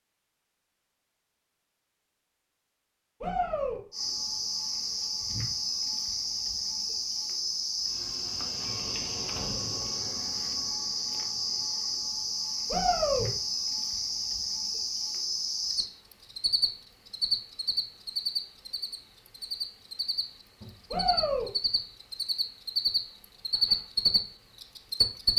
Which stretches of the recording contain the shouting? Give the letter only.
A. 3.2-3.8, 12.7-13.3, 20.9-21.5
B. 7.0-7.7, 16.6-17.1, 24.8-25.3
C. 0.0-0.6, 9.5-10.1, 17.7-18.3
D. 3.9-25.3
A.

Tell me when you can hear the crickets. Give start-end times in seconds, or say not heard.
3.9-25.3.